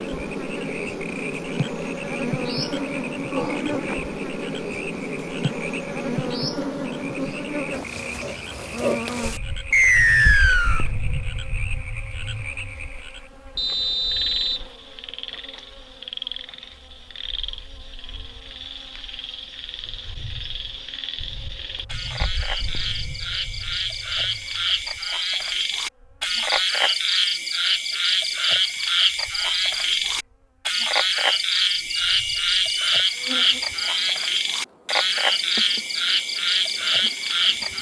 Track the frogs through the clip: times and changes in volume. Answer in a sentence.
The frogs can be heard from 0.0 to 37.7 s, getting louder.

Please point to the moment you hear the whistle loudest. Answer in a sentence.
The volume of the whistle peaks at 10 seconds.